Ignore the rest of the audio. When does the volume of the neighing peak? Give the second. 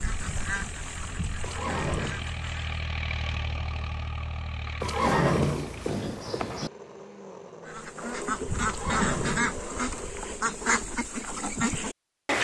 5 s.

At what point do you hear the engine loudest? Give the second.
3 s.